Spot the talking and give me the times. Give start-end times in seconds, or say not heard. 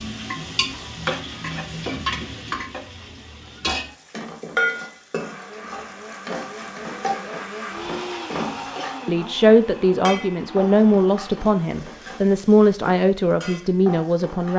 9.1-14.5.